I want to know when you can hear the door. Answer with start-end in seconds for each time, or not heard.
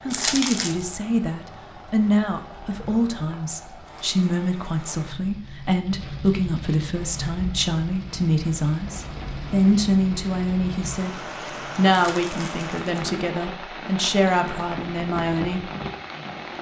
not heard.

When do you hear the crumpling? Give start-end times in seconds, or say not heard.
0.1-0.8, 11.9-13.1.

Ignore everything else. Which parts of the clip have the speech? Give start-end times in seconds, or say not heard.
0.1-15.7.